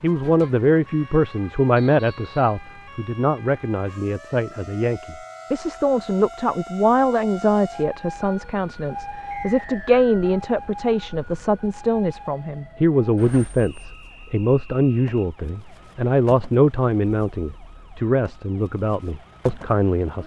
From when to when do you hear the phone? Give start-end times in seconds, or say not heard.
not heard.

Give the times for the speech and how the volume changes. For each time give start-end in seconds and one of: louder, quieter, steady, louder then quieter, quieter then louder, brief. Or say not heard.
0.0-20.2 steady.